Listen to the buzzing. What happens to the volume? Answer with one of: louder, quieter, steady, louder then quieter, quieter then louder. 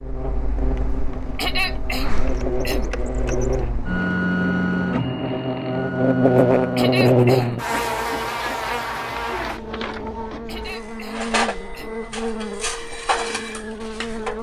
louder then quieter.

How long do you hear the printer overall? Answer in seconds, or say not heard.
14 s.